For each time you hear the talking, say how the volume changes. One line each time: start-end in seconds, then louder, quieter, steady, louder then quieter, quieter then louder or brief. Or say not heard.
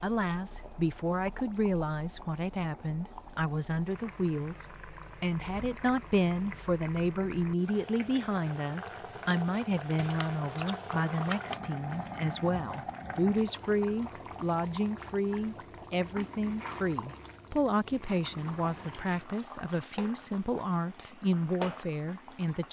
0.0-22.6 steady.